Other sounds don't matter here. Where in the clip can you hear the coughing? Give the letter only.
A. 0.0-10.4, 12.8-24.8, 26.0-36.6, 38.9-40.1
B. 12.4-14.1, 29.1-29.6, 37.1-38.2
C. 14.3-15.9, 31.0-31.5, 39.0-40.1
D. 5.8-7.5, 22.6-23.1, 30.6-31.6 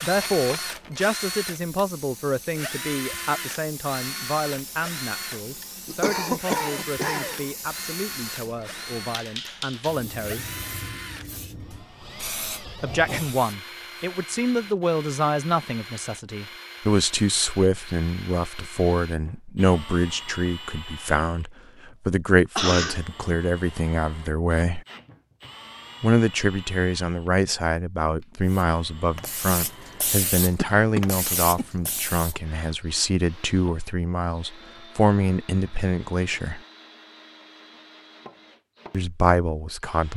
D.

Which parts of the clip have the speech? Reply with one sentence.
The speech can be heard from 0.0 to 10.4 s, from 12.8 to 24.8 s, from 26.0 to 36.6 s and from 38.9 to 40.1 s.